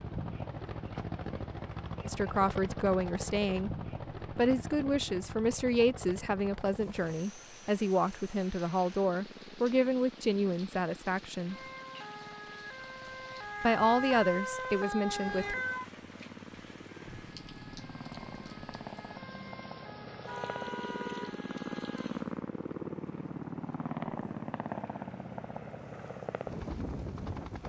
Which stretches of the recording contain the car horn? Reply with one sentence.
The car horn can be heard from 20.2 to 21.4 s.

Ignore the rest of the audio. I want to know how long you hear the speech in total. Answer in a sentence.
You can hear the speech for 11 seconds altogether.